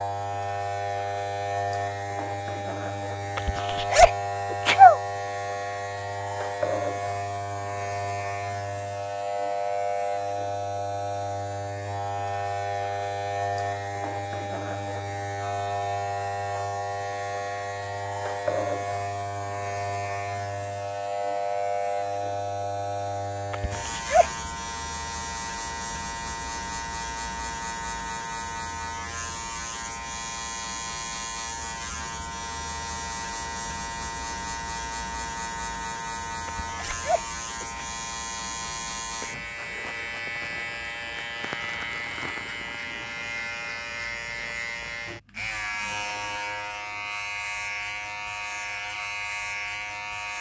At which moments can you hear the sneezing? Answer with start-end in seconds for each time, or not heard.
3.4-5.0, 23.5-24.3, 36.5-37.9.